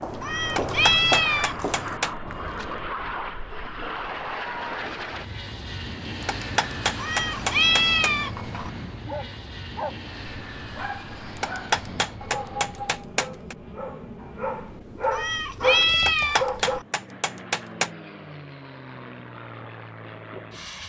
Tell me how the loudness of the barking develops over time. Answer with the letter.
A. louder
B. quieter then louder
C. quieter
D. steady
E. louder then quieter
A.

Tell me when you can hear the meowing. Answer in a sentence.
You can hear the meowing from 0.2 to 1.8 s, from 7.0 to 8.7 s and from 15.1 to 16.9 s.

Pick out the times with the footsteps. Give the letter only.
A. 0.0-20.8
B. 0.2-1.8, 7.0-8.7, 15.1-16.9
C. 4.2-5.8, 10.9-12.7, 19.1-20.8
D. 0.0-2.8
D.